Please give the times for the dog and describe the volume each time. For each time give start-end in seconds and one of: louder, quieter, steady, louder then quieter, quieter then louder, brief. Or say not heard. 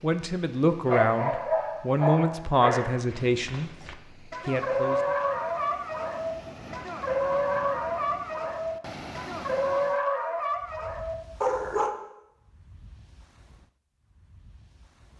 0.8-11.9 steady.